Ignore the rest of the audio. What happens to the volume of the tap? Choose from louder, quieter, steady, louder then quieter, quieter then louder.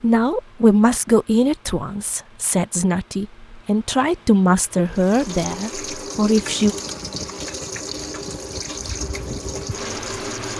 steady.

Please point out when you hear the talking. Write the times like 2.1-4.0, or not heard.
0.0-6.8.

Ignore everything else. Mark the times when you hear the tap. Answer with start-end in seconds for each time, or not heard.
4.9-10.5.